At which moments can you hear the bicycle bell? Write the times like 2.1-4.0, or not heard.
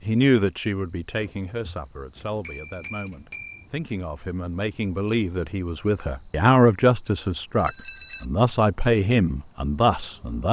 2.4-3.6, 7.6-8.2.